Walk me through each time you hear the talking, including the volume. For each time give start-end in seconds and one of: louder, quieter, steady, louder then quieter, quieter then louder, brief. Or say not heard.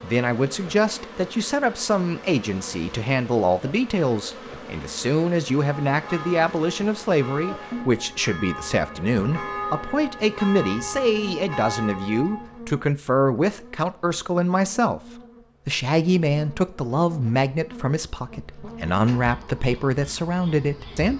0.0-15.0 steady
15.7-21.1 quieter then louder.